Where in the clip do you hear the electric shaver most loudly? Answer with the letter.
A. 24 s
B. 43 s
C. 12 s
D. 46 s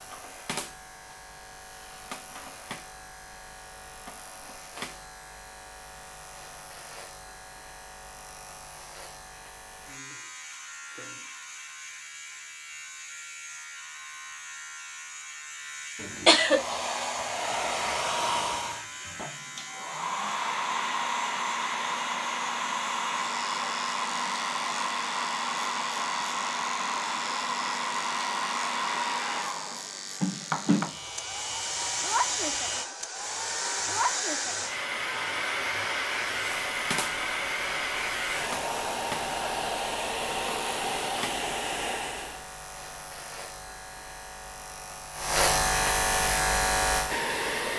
D.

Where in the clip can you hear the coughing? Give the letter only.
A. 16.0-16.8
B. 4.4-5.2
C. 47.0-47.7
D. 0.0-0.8
A.